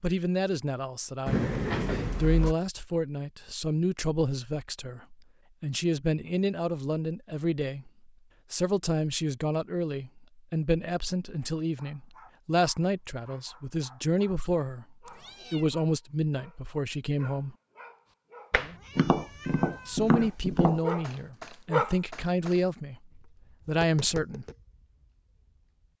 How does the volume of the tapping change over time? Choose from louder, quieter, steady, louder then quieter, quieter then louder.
quieter then louder.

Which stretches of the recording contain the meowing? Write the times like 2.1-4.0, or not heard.
1.2-2.5, 15.1-15.7, 18.5-20.0.